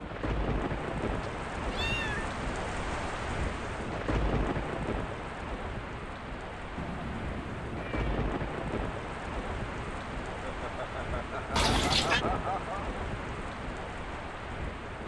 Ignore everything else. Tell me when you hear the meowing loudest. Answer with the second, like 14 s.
12 s.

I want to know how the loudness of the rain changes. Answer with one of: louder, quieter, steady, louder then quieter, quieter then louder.
steady.